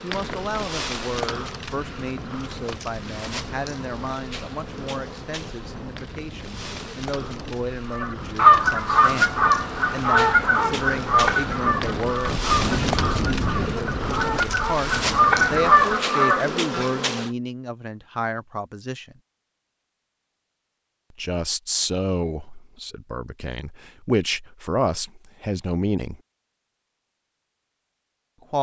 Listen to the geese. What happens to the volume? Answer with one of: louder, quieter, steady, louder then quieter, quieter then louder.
quieter then louder.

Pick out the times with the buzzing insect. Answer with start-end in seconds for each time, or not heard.
0.0-17.4.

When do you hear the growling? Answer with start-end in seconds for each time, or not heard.
not heard.